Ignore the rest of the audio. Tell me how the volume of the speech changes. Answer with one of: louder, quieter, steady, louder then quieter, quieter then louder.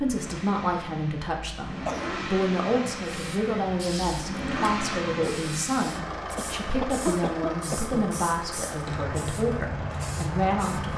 steady.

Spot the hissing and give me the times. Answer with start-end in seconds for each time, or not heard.
3.0-10.9.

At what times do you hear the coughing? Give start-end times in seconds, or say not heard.
1.6-2.2, 6.3-8.1.